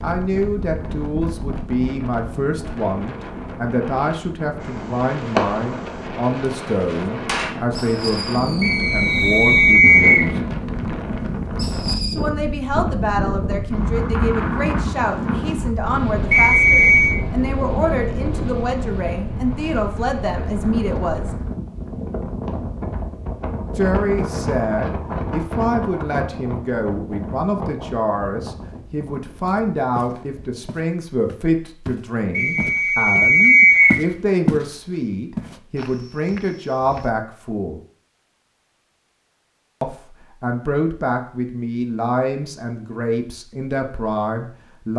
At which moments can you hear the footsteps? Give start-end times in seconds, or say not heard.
29.4-34.6, 35.4-37.1.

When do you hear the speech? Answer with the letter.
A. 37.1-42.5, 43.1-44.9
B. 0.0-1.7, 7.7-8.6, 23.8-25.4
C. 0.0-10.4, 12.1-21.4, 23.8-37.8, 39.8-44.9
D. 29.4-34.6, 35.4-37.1
C.